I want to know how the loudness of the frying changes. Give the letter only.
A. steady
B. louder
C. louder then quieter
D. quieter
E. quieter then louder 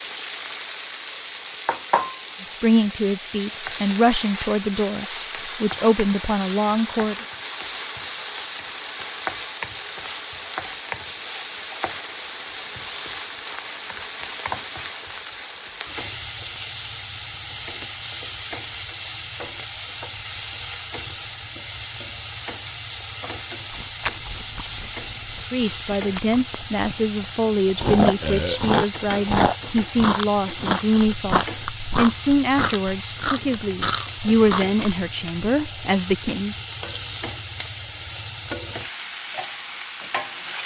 A.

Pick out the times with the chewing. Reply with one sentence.
The chewing can be heard from 23.7 to 35.0 s.